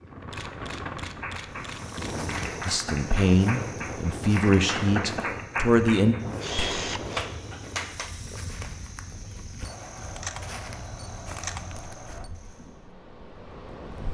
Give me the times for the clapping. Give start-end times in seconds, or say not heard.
1.0-8.1.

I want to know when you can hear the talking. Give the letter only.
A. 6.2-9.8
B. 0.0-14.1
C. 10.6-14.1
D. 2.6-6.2
D.